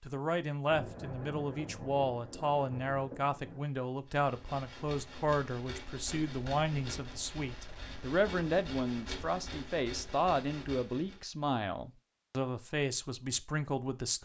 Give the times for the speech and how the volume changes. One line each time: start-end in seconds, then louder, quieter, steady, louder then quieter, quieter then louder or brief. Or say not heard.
0.0-14.2 steady.